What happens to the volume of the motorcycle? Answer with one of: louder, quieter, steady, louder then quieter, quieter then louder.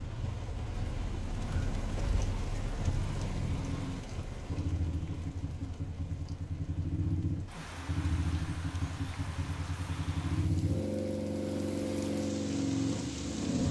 louder.